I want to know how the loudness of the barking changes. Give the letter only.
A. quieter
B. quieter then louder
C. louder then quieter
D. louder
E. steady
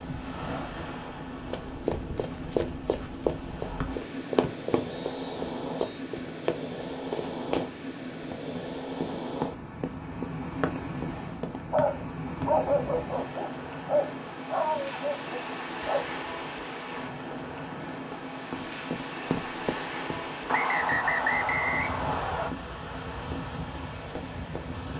A.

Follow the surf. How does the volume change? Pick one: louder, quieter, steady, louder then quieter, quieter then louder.
steady.